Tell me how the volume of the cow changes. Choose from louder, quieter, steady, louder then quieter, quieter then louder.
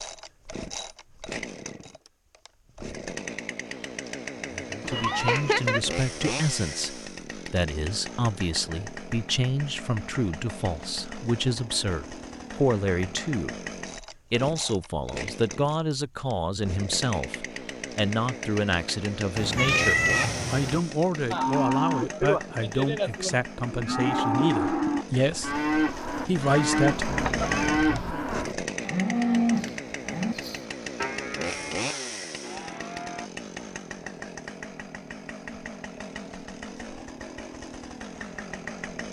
quieter.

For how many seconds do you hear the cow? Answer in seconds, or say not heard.
12 s.